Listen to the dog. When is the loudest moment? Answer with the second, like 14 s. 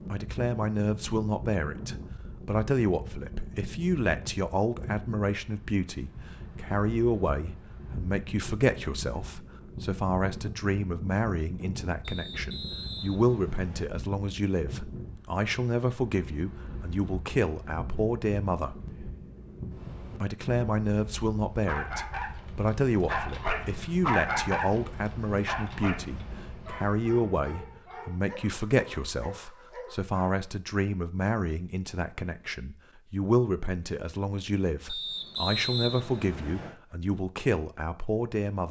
24 s.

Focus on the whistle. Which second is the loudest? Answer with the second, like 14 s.
36 s.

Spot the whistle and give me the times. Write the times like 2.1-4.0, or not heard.
12.0-13.9, 34.9-36.8.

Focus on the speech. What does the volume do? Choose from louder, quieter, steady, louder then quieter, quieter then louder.
steady.